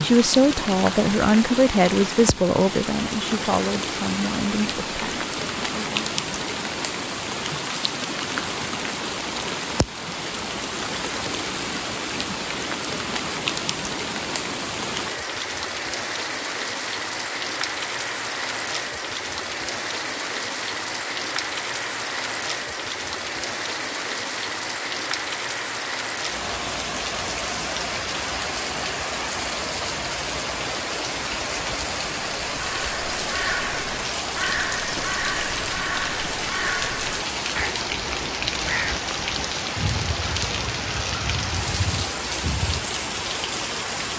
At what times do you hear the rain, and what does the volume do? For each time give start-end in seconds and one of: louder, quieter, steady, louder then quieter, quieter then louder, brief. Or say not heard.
0.0-44.1 steady.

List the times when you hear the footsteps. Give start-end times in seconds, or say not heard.
not heard.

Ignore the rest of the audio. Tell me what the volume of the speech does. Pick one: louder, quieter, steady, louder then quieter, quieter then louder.
quieter.